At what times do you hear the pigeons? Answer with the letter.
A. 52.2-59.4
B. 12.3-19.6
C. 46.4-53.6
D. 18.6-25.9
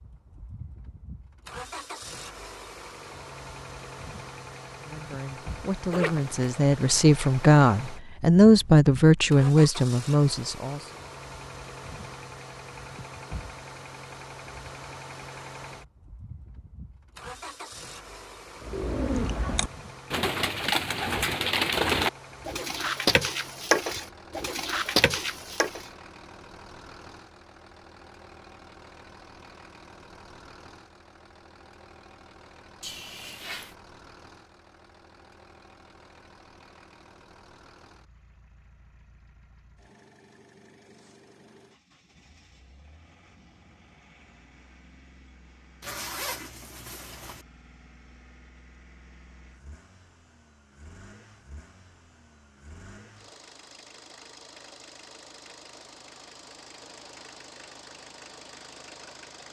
D.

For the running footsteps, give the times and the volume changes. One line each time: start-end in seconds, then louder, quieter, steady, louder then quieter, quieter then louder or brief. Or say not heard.
not heard.